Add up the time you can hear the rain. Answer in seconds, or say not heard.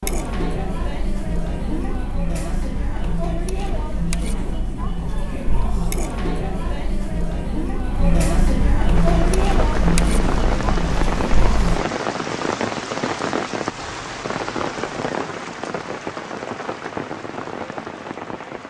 10 s.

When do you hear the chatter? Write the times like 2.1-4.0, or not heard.
0.0-11.9.